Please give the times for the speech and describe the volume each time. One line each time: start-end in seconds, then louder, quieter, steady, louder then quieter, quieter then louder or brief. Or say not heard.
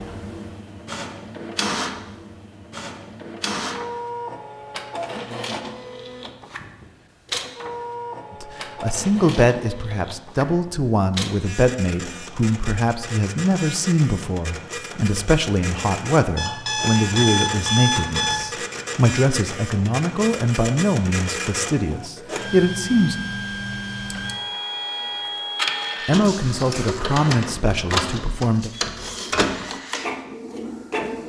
8.4-23.1 steady
26.1-28.7 brief.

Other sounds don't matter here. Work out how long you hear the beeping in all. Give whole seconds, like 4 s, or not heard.
2 s.